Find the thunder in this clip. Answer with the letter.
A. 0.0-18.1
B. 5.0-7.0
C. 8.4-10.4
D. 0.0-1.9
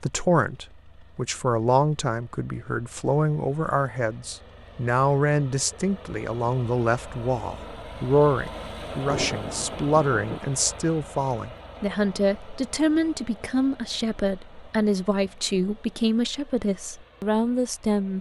C.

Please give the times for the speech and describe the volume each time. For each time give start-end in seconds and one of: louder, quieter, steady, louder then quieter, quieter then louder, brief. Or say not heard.
0.0-18.1 steady.